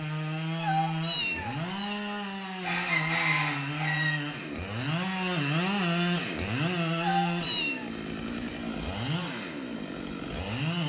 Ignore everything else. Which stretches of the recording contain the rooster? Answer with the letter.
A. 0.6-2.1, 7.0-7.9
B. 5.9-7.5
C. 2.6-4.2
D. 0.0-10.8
C.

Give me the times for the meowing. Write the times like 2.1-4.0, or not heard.
0.6-2.1, 7.0-7.9.